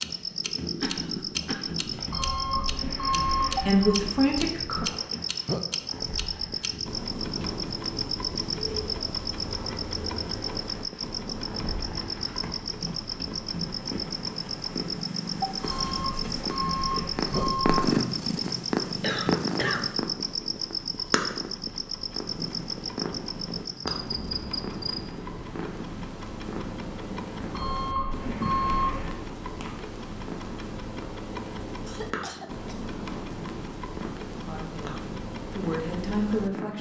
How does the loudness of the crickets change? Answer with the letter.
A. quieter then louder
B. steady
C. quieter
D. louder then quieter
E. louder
B.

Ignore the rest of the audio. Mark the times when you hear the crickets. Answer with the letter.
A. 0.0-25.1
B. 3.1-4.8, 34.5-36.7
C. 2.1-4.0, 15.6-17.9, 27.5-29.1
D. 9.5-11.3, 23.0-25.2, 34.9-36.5
A.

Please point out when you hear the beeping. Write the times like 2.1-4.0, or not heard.
2.1-4.0, 15.6-17.9, 27.5-29.1.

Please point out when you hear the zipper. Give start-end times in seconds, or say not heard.
not heard.